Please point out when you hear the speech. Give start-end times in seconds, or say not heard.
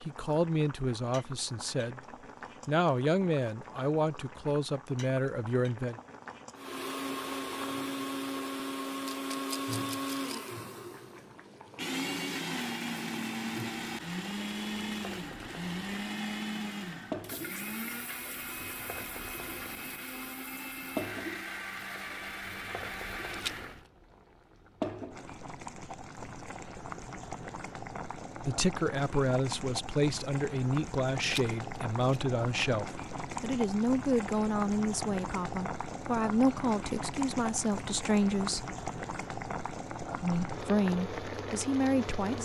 0.0-2.0, 2.6-6.0, 28.4-38.7, 40.2-42.3.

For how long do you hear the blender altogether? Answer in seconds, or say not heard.
17 s.